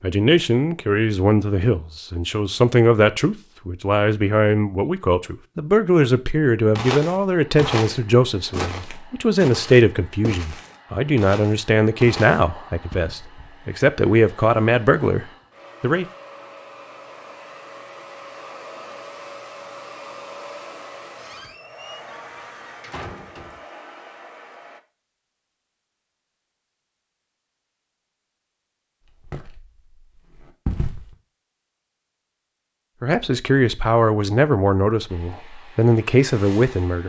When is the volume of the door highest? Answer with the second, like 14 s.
23 s.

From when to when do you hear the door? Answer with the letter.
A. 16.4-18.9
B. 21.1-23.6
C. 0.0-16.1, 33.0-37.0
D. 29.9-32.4
B.